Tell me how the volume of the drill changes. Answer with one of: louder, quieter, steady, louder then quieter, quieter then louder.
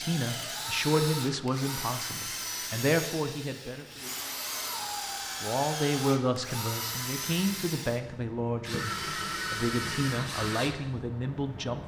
steady.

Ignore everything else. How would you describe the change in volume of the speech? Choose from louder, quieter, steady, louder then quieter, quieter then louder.
steady.